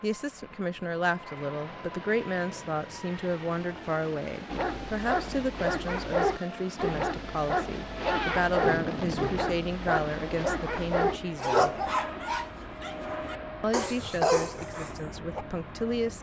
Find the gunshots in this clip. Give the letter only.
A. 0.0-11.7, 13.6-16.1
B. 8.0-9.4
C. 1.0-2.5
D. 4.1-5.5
B.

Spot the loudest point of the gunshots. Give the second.
8 s.